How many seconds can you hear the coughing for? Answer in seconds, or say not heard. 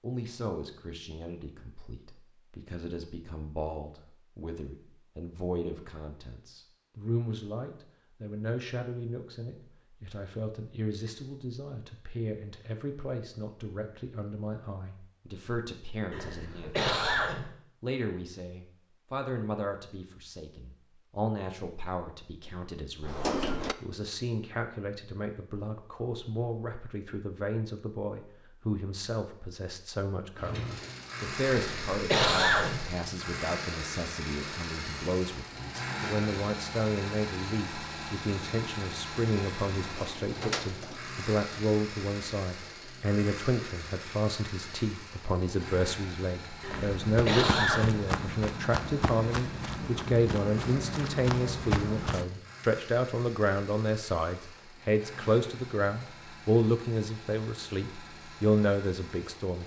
4 s.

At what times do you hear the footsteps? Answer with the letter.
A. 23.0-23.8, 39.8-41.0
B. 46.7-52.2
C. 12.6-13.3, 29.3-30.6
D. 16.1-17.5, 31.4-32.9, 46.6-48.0
B.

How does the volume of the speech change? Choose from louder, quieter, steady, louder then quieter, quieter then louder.
louder.